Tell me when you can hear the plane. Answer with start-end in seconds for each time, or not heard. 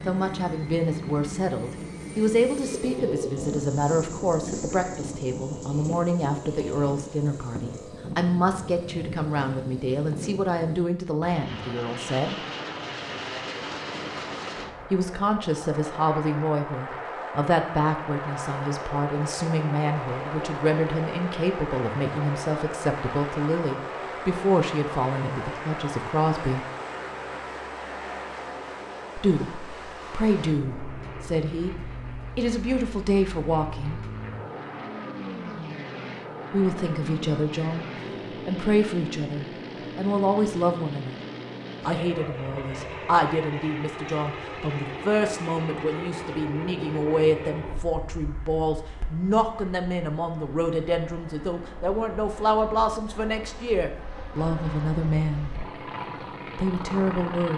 0.0-57.5.